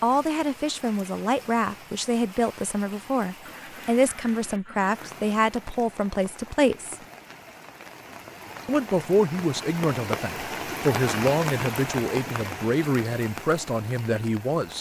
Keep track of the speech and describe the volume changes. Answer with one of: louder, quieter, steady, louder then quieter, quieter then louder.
steady.